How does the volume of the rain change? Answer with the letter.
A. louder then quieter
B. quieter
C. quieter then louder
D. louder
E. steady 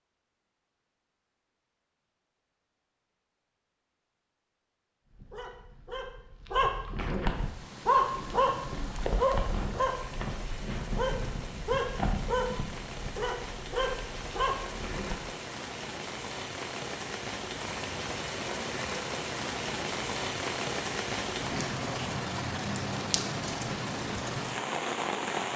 D.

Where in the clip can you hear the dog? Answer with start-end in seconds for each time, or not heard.
5.1-15.3.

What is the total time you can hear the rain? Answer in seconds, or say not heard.
18 s.